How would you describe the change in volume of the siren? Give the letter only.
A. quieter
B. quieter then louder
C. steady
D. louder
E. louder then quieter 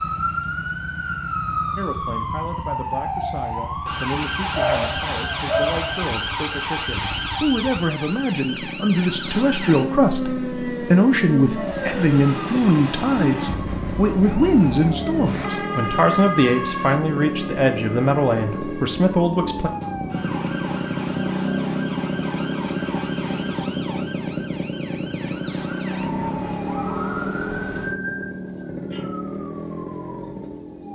A.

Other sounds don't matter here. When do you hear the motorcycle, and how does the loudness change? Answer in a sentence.
The motorcycle can be heard from 0.0 to 30.8 s, getting louder.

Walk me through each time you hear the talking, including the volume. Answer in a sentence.
You can hear the talking from 1.8 to 19.7 s, getting louder.